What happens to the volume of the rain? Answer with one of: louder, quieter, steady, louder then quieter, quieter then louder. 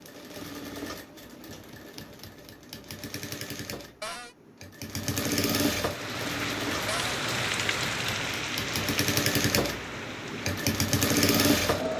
quieter.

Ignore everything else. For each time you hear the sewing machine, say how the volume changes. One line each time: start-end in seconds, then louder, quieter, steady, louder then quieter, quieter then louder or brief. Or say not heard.
0.0-11.9 louder.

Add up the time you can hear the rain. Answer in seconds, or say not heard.
6 s.